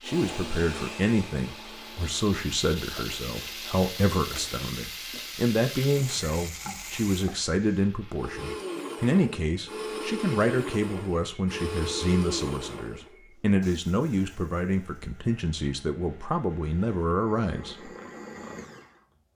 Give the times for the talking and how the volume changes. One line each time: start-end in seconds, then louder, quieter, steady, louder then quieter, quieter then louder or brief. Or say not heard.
0.0-17.9 steady.